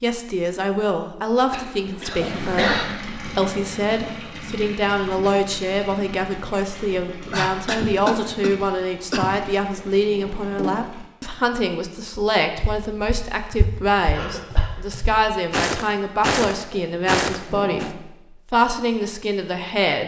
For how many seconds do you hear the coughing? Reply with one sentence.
The coughing can be heard for 4 seconds in total.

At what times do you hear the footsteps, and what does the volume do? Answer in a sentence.
The footsteps can be heard from 12.2 to 17.9 s, getting louder.